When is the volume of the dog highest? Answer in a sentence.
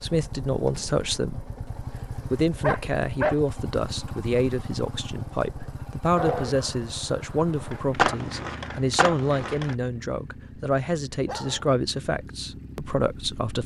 The loudest moment of the dog is at 3 seconds.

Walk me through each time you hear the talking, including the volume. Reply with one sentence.
The talking can be heard from 0.0 to 13.6 s, at a steady volume.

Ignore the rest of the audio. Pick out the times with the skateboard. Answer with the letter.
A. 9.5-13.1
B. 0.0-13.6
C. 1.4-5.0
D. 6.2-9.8
D.